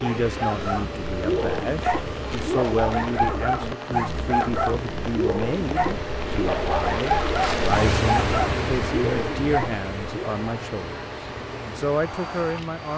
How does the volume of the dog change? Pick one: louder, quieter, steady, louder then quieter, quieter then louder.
steady.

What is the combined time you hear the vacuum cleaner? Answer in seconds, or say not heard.
13 s.